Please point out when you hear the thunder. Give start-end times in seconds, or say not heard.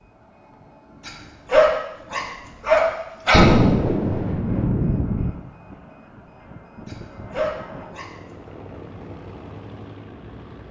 3.3-5.3.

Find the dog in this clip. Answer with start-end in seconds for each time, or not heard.
1.1-3.5, 6.8-8.1.